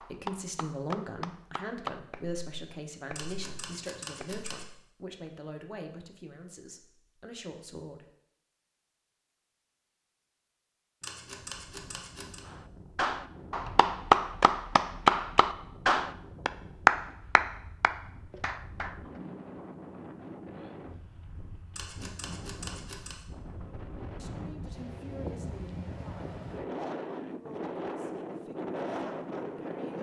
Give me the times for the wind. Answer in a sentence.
You can hear the wind from 11.2 to 29.9 s.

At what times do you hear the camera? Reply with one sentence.
The camera can be heard from 3.1 to 4.7 s, from 11.0 to 12.4 s and from 21.7 to 23.2 s.